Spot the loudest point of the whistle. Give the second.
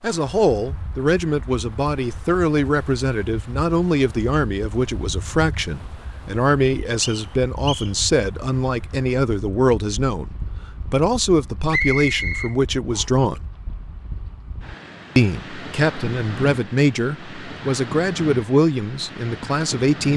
12 s.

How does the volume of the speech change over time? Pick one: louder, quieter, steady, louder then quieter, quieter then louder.
steady.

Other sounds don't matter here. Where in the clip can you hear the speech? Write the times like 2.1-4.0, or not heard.
0.0-13.4, 15.2-20.1.